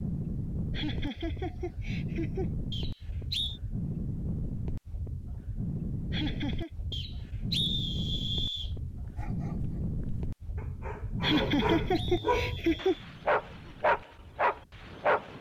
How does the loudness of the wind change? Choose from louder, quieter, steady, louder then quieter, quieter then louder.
quieter.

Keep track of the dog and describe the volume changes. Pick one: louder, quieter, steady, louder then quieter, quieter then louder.
louder.